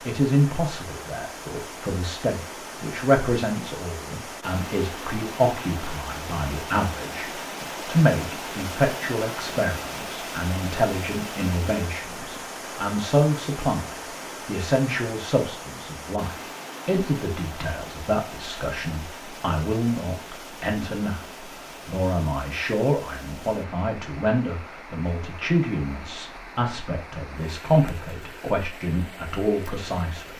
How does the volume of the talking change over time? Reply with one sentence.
The loudness of the talking stays about the same.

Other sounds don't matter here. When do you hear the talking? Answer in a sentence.
You can hear the talking from 0.1 to 30.3 s.